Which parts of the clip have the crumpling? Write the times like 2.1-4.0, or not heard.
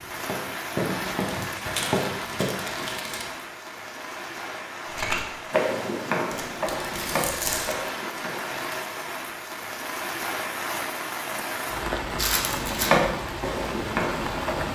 0.8-3.2, 6.3-7.8, 12.2-12.9.